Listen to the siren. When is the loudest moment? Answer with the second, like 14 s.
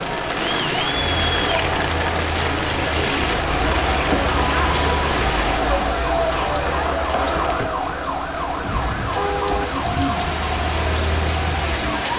10 s.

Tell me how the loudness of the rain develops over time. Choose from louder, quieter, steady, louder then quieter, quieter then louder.
quieter then louder.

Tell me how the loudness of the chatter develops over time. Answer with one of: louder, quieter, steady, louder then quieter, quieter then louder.
quieter.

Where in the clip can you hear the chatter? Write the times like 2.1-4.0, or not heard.
0.0-12.1.